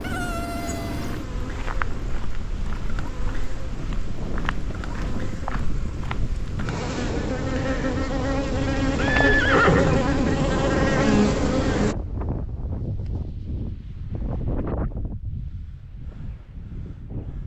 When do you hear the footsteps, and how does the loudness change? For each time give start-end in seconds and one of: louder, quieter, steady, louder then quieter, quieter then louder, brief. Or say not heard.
0.9-6.7 quieter then louder.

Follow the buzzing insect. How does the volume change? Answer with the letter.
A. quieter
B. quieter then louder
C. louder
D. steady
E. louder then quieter
B.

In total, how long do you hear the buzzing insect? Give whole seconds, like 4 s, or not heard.
12 s.